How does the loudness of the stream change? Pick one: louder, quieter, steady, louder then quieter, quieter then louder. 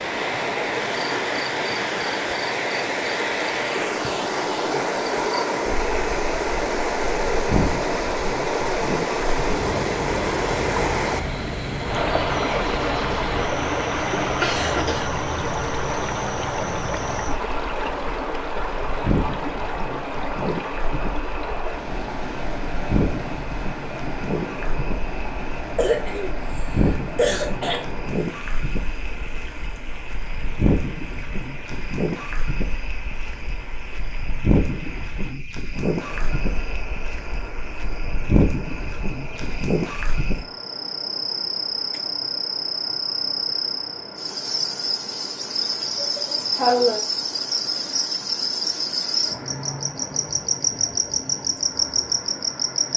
quieter.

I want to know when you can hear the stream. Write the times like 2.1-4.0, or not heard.
0.0-52.9.